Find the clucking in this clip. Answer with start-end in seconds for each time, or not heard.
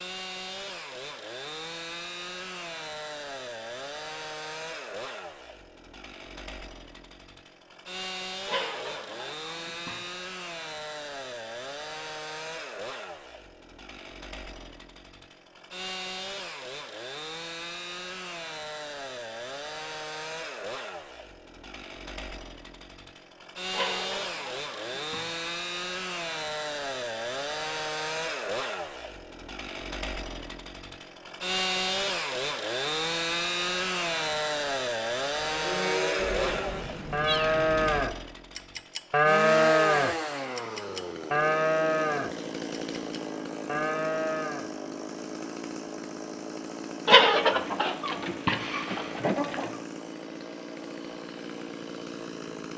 8.4-10.1, 23.7-25.4, 47.0-49.7.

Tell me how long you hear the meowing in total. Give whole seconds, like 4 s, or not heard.
2 s.